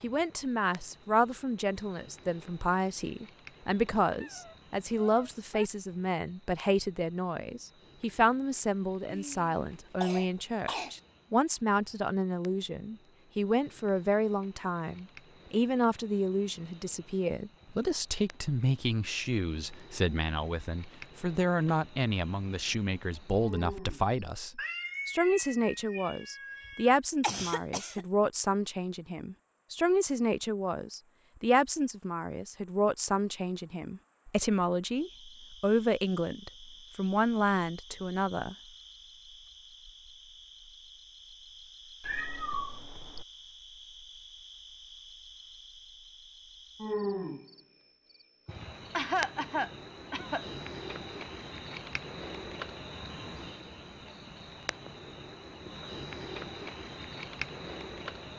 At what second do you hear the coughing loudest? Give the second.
49 s.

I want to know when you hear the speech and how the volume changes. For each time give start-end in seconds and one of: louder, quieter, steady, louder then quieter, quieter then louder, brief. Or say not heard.
0.0-38.5 steady.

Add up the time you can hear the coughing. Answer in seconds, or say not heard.
5 s.